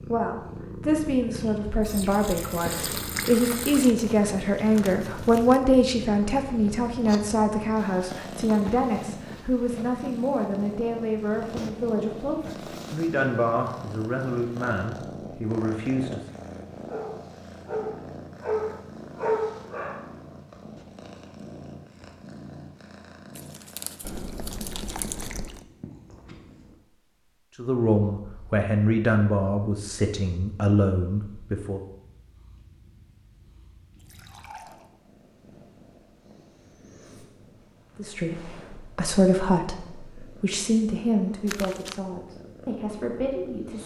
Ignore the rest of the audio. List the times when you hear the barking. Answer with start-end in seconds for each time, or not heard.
16.9-20.1.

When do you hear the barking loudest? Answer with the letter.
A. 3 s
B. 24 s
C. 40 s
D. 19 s
D.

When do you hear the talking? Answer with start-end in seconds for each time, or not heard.
0.0-16.3, 27.6-31.8, 38.0-43.8.